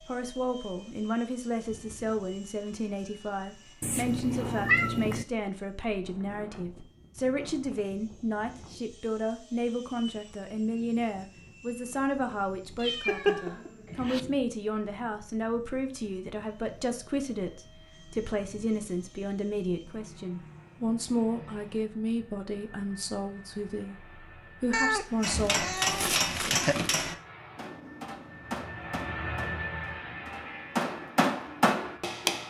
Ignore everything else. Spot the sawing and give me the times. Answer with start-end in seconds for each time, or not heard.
not heard.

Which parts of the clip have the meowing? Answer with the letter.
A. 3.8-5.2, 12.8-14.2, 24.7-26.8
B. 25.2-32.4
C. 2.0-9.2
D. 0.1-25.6
A.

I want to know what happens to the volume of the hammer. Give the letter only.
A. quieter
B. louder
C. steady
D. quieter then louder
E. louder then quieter
D.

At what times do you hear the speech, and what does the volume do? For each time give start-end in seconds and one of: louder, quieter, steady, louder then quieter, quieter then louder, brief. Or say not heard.
0.1-25.6 steady.